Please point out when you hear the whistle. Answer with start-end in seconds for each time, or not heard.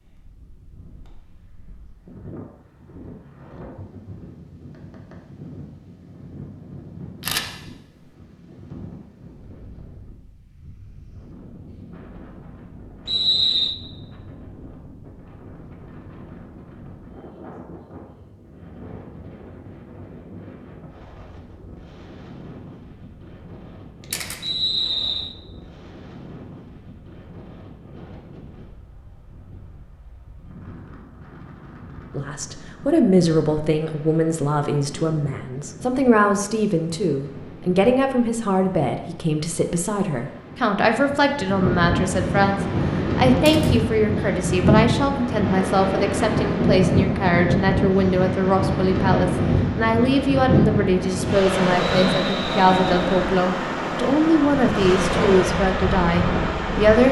13.1-13.8, 24.4-25.4, 52.0-53.2.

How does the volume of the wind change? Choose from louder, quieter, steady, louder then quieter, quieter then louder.
louder.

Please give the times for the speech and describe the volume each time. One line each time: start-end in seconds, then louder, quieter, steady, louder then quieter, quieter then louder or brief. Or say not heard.
32.1-57.0 steady.